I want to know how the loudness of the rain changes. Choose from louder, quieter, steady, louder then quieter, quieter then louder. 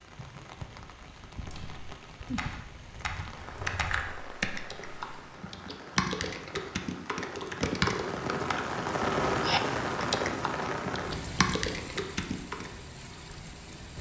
louder then quieter.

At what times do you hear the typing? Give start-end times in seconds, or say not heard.
1.4-12.8.